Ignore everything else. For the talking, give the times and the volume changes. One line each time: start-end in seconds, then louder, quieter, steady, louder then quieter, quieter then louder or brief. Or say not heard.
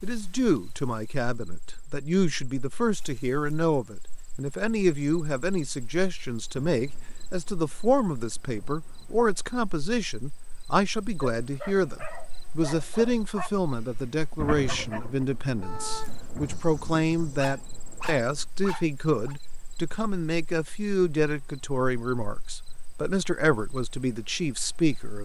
0.0-25.2 steady.